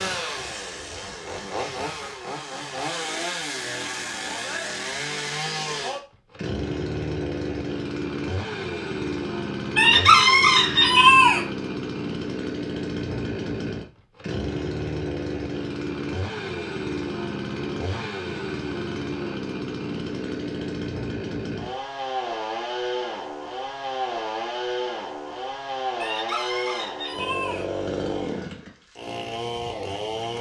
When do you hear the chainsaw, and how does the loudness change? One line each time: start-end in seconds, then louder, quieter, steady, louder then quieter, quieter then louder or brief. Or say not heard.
0.0-30.3 steady.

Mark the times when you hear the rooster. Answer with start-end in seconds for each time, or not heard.
9.8-11.4, 25.9-27.6.